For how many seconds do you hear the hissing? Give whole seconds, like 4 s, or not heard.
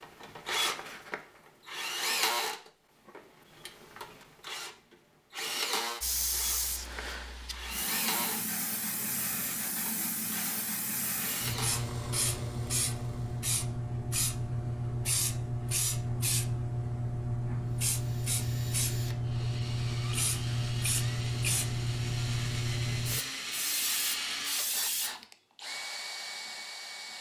19 s.